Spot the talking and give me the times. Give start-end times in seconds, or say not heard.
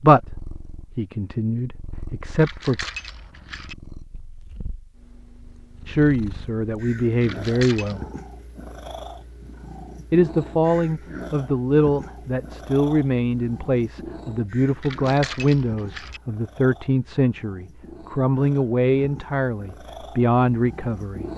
0.0-2.9, 5.8-8.1, 10.1-21.2.